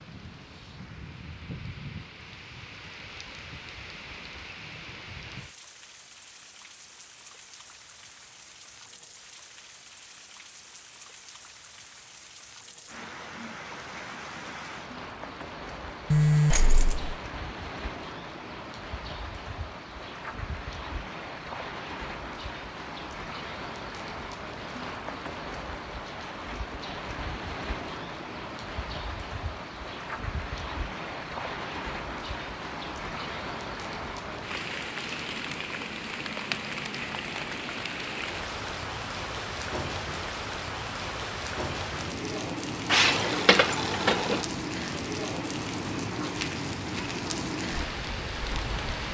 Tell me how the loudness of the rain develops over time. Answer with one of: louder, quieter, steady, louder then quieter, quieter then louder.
louder.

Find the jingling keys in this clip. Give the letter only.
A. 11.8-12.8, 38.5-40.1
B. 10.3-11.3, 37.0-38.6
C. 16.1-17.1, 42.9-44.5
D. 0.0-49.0
C.